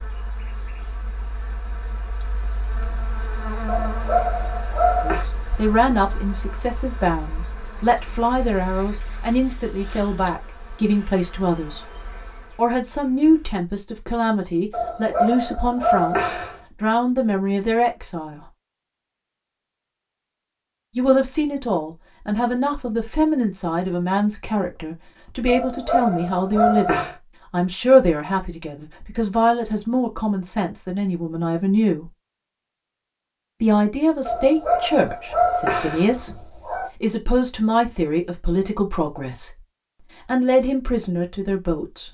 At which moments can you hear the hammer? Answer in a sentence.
You can't hear the hammer here.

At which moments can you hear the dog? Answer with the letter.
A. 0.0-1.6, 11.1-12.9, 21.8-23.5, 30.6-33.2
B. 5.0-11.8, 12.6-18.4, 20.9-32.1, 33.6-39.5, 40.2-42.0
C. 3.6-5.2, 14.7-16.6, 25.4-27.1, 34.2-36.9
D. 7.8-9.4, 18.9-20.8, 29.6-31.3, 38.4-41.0
C.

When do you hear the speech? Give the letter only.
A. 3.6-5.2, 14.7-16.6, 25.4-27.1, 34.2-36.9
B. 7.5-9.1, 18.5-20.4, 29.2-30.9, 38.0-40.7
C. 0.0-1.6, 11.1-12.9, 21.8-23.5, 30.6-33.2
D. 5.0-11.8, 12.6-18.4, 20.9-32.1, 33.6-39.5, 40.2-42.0
D.